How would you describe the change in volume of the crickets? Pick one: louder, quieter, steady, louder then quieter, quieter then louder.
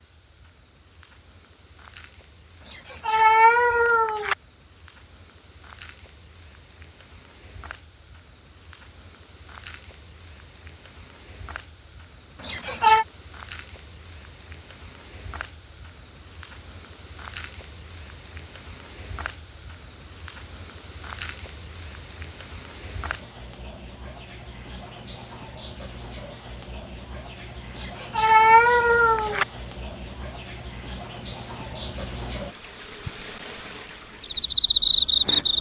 louder.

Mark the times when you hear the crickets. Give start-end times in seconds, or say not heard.
0.0-35.5.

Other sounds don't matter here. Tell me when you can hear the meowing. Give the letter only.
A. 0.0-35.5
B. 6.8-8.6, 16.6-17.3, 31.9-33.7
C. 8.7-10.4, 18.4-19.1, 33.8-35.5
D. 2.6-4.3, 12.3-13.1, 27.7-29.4
D.